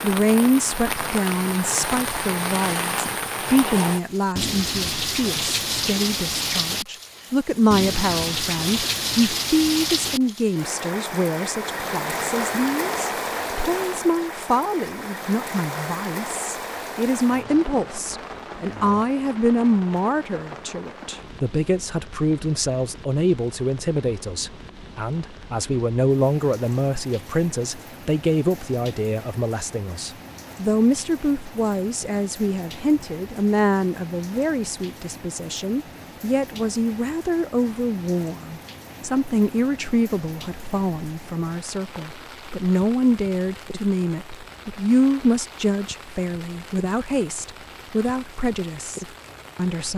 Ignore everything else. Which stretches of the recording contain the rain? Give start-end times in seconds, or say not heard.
0.0-49.9.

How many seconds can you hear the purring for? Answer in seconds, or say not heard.
not heard.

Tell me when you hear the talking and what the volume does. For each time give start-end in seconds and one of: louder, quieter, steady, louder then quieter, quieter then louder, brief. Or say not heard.
0.0-49.9 steady.